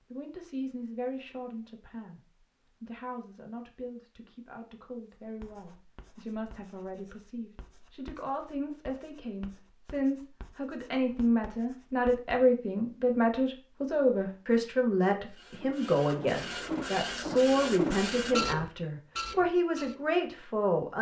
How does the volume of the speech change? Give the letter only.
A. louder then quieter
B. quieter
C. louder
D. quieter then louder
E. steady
C.